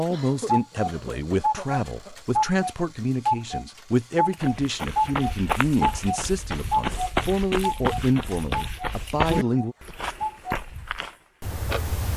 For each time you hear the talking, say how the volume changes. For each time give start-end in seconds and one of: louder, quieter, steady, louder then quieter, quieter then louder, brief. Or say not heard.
0.0-9.8 steady.